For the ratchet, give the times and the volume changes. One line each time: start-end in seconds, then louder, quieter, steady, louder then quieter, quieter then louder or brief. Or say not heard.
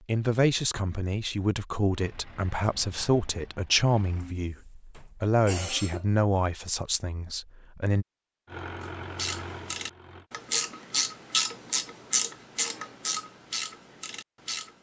9.2-14.7 louder then quieter.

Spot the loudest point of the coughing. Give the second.
6 s.